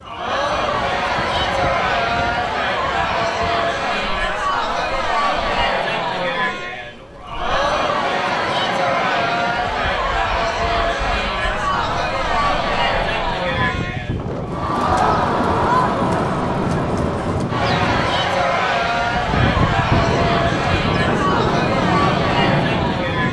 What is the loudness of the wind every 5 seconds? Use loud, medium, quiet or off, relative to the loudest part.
quiet, quiet, medium, loud, loud.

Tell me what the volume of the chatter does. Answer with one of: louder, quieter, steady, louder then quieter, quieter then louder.
steady.